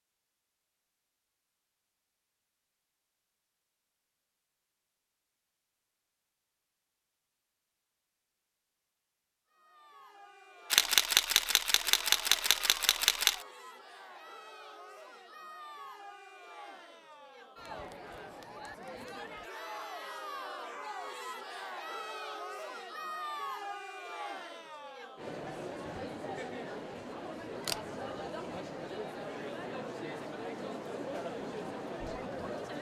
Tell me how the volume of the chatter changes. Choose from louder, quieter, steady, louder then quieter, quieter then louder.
louder.